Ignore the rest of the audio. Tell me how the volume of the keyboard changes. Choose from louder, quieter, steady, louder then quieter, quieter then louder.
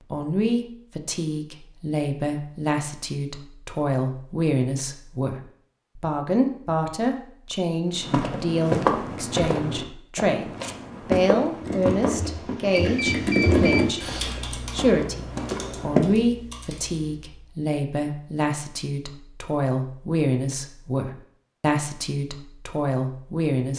louder then quieter.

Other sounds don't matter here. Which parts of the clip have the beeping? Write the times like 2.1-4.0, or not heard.
12.7-13.9.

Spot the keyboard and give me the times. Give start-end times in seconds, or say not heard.
11.4-17.4.